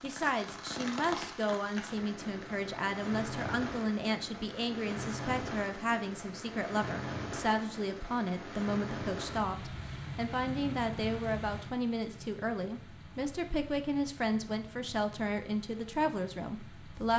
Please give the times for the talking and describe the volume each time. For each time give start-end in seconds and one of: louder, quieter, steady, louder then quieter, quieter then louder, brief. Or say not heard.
0.0-17.1 steady.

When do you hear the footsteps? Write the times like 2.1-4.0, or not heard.
not heard.